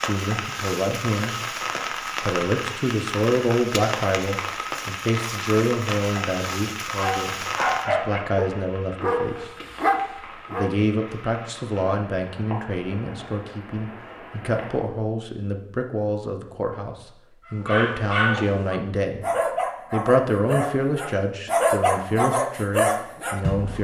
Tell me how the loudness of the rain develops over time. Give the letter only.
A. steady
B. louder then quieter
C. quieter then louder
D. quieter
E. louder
D.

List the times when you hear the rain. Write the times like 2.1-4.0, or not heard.
0.0-14.8.